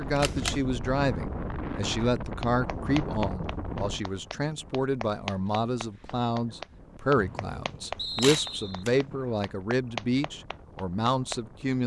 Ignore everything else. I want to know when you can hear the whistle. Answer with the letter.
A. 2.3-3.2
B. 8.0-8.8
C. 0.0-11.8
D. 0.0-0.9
B.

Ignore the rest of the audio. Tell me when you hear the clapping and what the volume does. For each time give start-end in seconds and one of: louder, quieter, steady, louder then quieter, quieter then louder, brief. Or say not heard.
2.4-11.8 quieter then louder.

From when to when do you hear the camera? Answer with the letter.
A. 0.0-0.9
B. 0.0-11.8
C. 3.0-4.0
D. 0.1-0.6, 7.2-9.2
D.